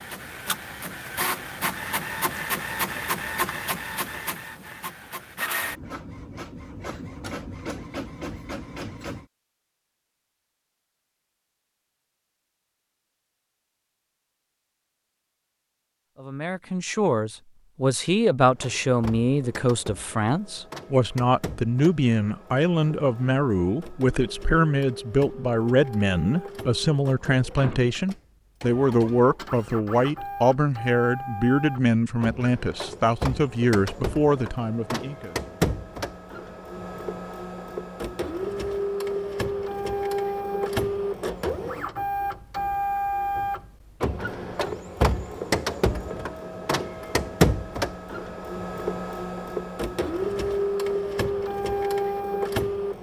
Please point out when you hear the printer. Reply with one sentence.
The printer can be heard from 0.0 to 9.2 s and from 18.6 to 52.9 s.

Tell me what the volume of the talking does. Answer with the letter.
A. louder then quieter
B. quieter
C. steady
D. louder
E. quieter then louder
C.